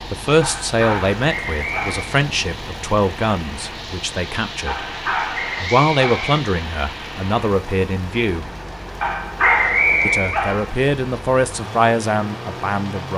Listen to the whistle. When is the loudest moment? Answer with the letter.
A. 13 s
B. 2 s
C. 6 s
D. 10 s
D.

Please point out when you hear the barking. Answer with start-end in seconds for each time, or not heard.
0.4-2.1, 4.7-6.4, 9.0-10.8.